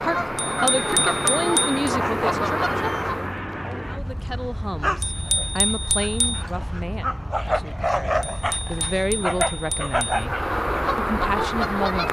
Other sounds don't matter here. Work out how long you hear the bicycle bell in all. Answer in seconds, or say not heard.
5 s.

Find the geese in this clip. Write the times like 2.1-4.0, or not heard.
0.0-3.4, 10.0-12.0.